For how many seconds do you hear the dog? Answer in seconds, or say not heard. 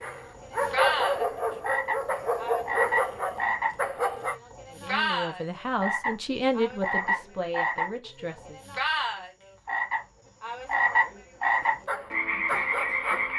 6 s.